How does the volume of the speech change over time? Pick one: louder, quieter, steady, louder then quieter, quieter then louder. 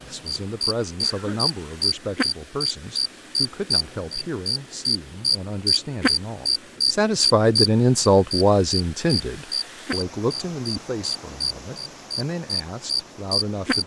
louder then quieter.